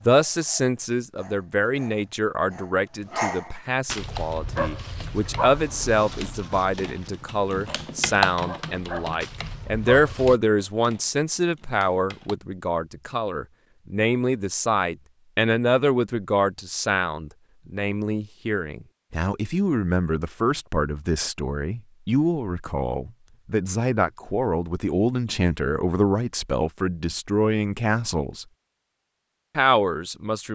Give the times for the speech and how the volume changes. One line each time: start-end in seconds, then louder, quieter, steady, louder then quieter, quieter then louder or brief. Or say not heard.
0.1-28.4 steady
29.6-30.5 brief.